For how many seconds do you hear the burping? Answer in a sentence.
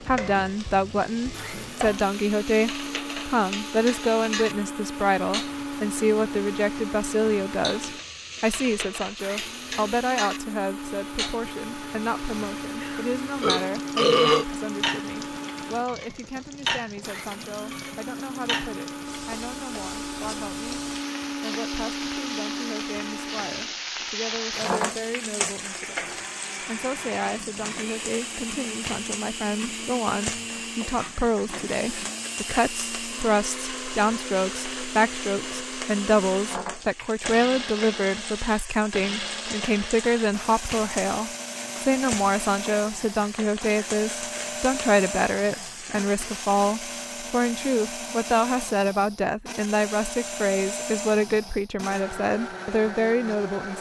You can hear the burping for 2 seconds altogether.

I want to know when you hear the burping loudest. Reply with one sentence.
The volume of the burping peaks at 14 seconds.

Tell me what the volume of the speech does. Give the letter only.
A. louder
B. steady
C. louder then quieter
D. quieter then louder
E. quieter
D.